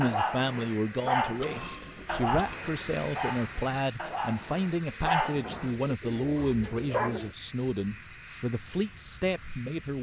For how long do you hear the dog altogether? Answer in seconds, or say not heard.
7 s.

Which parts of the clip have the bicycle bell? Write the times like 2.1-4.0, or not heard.
1.4-2.5, 7.0-7.7.